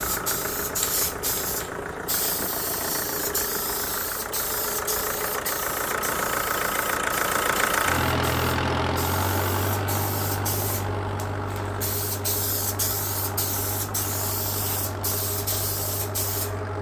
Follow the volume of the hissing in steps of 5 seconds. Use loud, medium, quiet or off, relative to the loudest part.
loud, medium, loud, loud.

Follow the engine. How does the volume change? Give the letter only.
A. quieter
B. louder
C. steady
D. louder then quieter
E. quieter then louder
D.